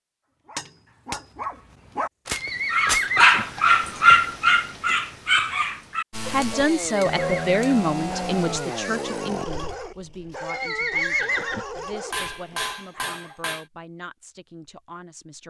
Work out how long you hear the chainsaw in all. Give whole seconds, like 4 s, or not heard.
7 s.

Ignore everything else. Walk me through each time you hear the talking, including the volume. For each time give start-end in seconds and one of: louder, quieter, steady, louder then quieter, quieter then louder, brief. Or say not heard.
6.2-15.4 quieter.